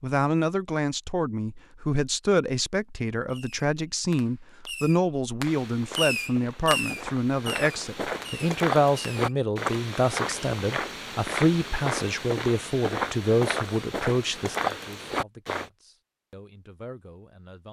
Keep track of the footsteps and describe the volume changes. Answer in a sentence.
The volume of the footsteps goes up.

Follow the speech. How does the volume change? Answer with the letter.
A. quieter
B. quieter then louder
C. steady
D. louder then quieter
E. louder
A.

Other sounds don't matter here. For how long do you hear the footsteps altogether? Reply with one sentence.
You can hear the footsteps for 10 seconds altogether.